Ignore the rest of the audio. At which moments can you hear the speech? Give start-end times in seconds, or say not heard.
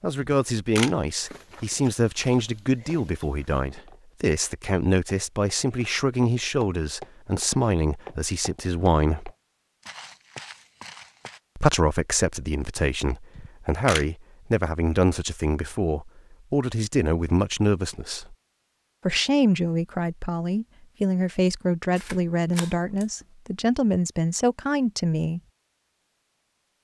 0.0-9.3, 11.6-18.4, 19.1-25.4.